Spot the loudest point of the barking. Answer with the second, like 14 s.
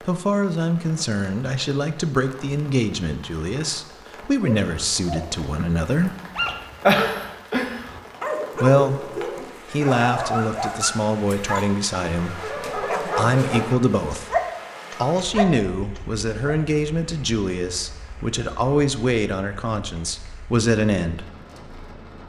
7 s.